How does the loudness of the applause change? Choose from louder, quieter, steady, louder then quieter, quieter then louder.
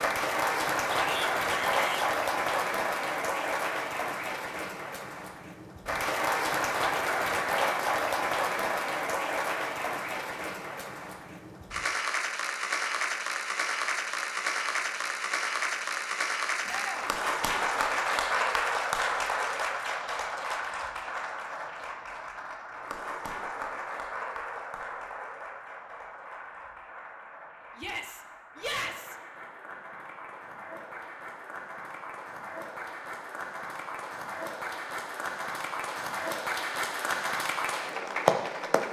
quieter then louder.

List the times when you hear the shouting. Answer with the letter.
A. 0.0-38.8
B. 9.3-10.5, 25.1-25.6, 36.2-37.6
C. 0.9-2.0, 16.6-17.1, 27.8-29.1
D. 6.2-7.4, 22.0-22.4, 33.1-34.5
C.